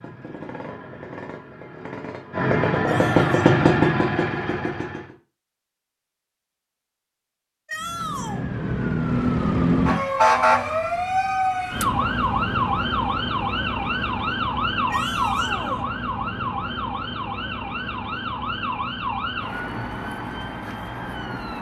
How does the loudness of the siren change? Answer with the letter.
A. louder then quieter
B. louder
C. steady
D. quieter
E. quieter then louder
D.